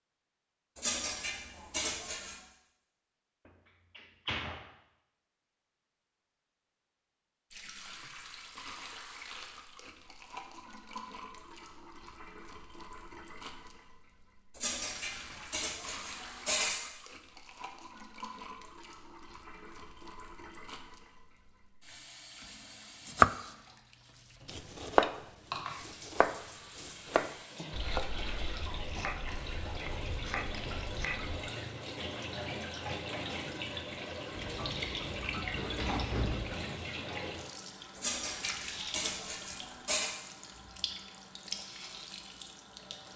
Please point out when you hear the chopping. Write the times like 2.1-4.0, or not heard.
23.1-23.6, 24.4-31.4.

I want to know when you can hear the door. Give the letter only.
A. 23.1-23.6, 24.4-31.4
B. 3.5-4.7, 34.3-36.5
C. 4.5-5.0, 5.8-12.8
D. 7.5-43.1
B.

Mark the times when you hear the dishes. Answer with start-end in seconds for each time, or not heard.
0.8-2.4, 14.6-16.8, 38.0-40.1.